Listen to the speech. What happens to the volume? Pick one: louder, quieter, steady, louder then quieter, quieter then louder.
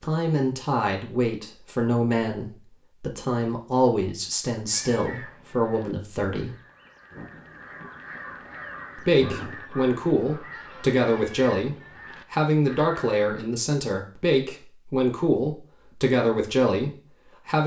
steady.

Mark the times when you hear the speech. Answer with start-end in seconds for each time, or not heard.
0.0-6.5, 8.9-17.6.